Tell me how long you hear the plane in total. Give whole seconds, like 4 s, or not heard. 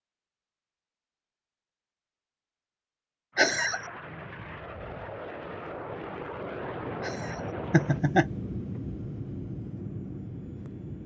8 s.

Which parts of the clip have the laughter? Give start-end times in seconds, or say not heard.
3.4-3.9, 7.0-8.2.